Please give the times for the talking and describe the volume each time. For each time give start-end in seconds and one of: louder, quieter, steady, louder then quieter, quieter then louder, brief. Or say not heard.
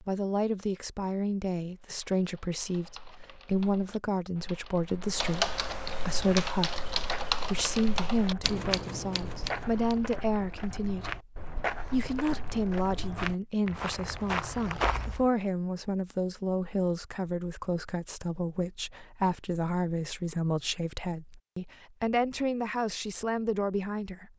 0.0-24.3 steady.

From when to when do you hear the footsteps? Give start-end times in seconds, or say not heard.
6.1-15.2.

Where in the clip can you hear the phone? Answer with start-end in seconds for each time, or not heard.
not heard.